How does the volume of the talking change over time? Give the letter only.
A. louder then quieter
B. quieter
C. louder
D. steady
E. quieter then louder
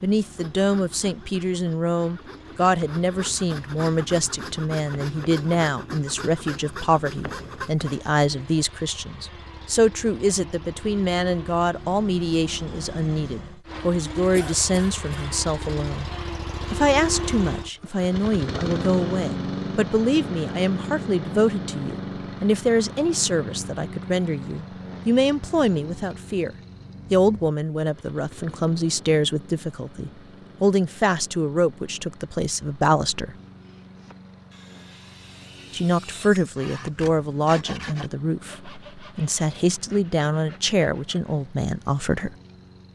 D.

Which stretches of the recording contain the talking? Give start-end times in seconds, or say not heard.
0.0-16.1, 16.7-33.4, 35.7-42.3.